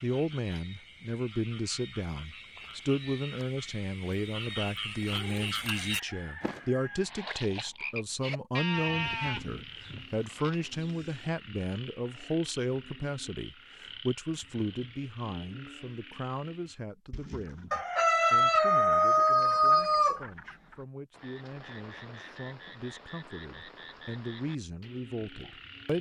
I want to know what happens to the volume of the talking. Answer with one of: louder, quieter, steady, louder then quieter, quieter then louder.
quieter.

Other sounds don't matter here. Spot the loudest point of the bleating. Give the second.
9 s.